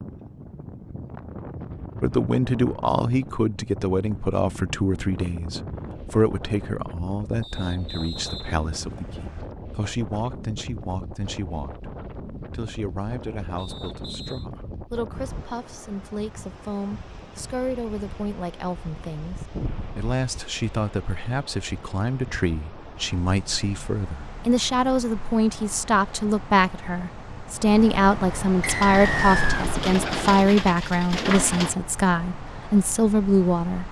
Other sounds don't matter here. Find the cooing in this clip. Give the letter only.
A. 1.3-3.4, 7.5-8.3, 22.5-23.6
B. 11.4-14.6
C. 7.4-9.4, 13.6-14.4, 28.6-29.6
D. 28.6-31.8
D.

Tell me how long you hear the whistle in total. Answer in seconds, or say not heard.
4 s.